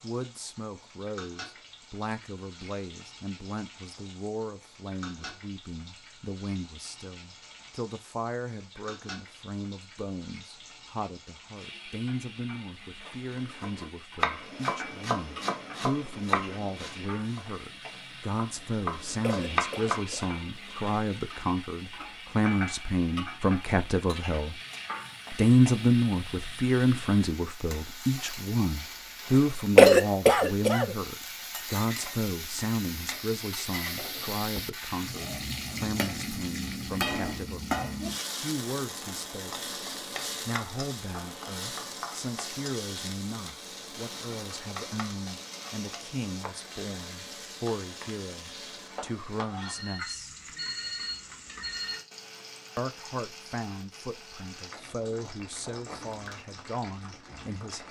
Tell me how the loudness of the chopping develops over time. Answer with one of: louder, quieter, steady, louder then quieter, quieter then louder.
quieter then louder.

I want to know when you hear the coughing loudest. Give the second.
30 s.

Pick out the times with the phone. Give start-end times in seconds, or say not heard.
49.6-52.0.